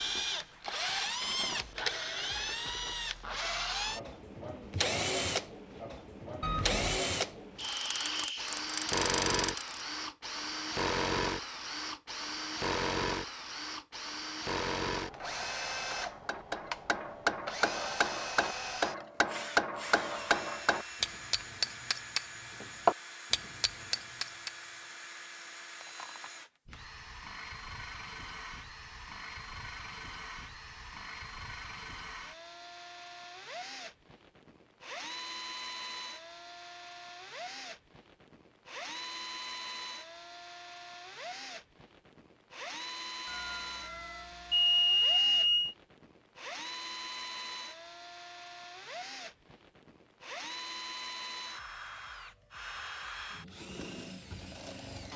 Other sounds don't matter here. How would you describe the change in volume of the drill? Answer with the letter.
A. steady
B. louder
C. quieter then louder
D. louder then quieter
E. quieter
E.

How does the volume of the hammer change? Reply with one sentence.
The volume of the hammer goes up.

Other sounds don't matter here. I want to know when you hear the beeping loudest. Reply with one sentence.
The volume of the beeping peaks at 45 seconds.